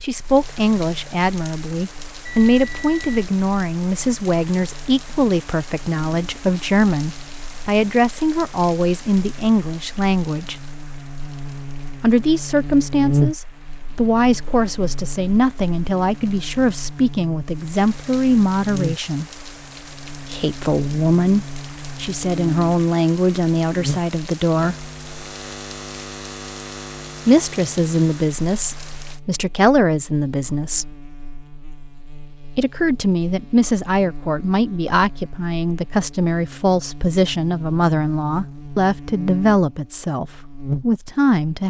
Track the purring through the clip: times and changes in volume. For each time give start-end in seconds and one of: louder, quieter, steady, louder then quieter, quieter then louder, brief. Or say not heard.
not heard.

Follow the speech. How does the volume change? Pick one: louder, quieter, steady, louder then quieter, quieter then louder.
steady.